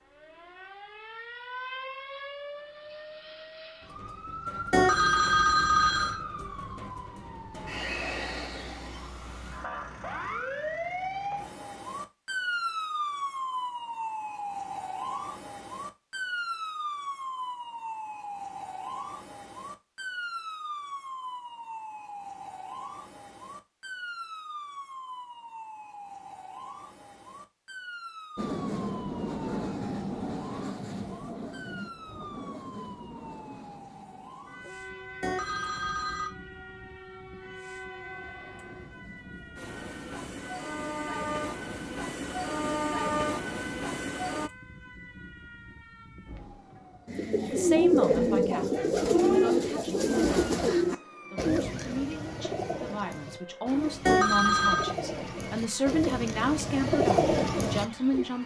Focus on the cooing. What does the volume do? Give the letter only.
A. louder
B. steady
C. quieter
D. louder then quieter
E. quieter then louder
E.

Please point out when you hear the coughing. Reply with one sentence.
The coughing can't be heard in this clip.